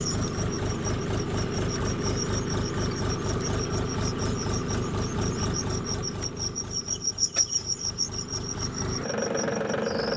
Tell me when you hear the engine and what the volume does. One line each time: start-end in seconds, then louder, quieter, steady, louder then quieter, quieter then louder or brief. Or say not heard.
0.0-10.1 quieter then louder.